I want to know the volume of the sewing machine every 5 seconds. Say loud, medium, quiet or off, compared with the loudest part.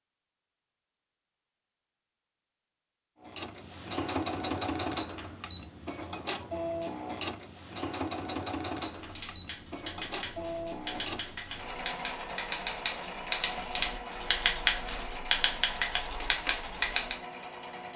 loud, loud, medium, medium.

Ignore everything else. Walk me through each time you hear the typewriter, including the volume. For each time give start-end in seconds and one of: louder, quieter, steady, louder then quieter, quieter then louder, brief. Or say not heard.
8.9-17.2 louder.